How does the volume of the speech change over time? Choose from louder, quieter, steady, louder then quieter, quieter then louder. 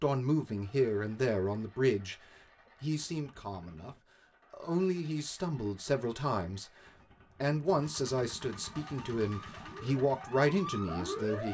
quieter then louder.